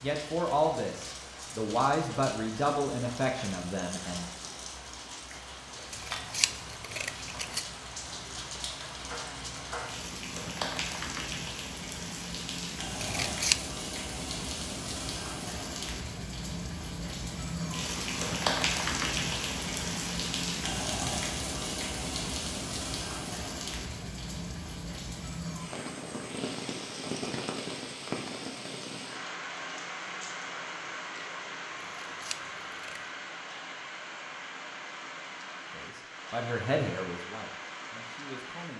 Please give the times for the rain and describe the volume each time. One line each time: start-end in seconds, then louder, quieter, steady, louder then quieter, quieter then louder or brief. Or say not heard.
0.0-38.7 louder then quieter.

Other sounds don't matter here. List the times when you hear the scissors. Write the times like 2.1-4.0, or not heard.
5.9-7.7, 13.0-13.6, 32.0-33.0.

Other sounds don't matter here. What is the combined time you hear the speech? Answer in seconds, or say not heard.
7 s.